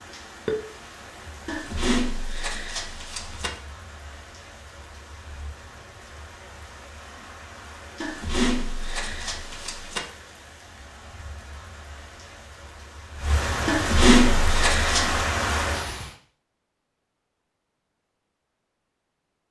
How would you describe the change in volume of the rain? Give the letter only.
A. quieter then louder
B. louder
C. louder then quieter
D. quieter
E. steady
B.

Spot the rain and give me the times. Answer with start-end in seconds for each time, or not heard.
0.0-16.1.